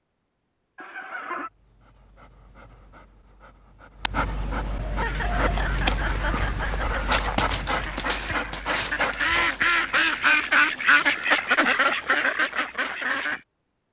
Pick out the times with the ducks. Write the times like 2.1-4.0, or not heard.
5.0-13.4.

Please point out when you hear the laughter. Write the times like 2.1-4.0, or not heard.
0.8-1.5, 4.9-7.0, 11.0-12.2.